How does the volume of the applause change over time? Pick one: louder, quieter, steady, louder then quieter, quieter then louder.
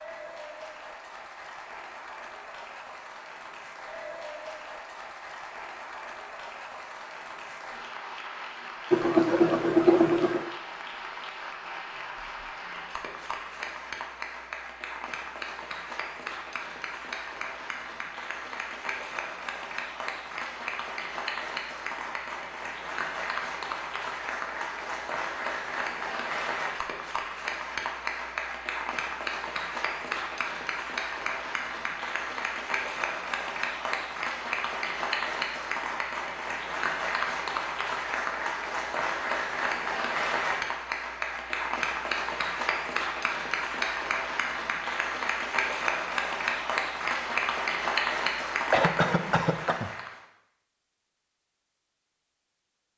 louder.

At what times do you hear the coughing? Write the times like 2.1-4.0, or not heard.
8.9-10.5, 48.7-49.9.